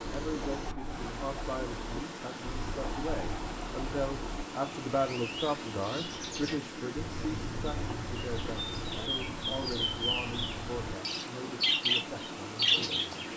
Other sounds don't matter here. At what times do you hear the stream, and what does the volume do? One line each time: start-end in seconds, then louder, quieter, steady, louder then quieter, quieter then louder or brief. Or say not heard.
0.0-13.3 steady.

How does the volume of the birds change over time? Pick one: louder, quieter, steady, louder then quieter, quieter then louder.
louder.